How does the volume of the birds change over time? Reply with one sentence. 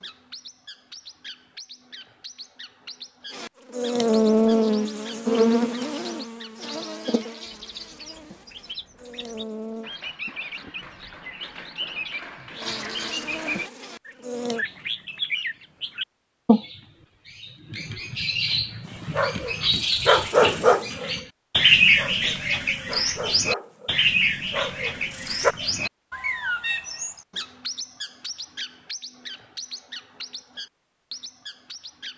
The loudness of the birds goes up, then down.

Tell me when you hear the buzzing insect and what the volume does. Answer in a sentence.
The buzzing insect can be heard from 3.3 to 9.9 s, getting quieter; and briefly from 12.6 to 14.7 s.